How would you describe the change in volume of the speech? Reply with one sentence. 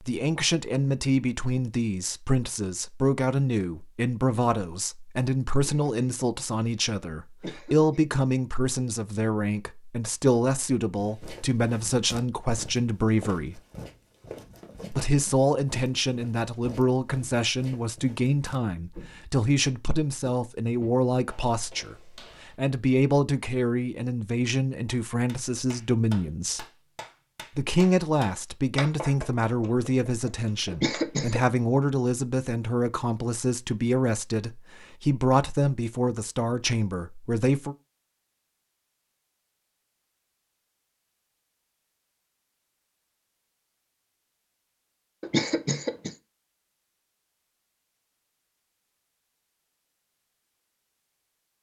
The loudness of the speech stays about the same.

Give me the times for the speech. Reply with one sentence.
The speech can be heard from 0.0 to 13.6 s, from 14.9 to 26.6 s and from 27.6 to 37.8 s.